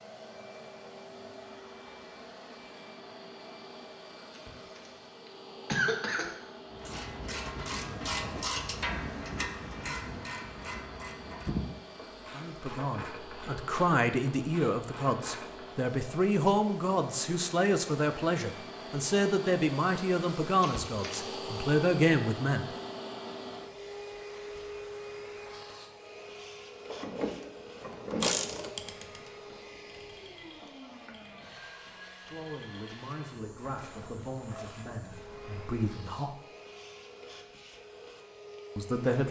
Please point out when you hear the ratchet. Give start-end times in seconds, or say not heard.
6.7-15.8, 26.8-35.8.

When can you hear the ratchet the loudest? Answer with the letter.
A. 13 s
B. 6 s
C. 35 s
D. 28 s
D.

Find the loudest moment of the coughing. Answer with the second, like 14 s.
6 s.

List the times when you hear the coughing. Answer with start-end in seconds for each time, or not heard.
4.3-4.8, 5.7-6.3, 20.6-21.4.